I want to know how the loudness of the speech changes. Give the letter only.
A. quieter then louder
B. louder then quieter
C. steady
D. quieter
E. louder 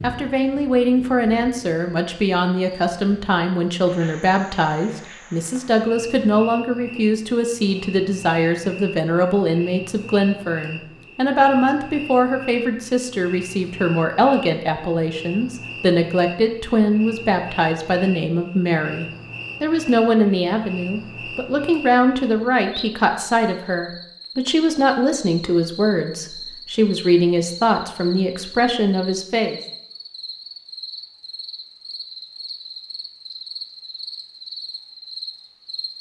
C.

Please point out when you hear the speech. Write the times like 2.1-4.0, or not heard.
0.0-29.6.